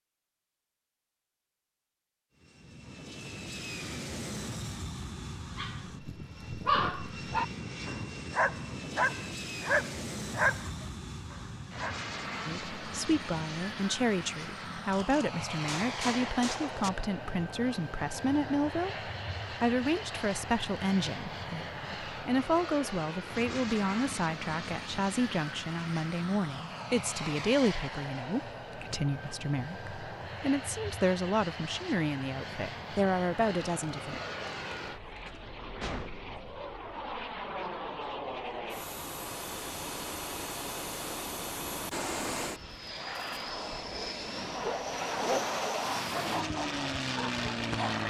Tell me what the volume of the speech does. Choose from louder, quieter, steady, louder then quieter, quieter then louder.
steady.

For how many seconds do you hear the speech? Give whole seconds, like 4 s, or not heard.
22 s.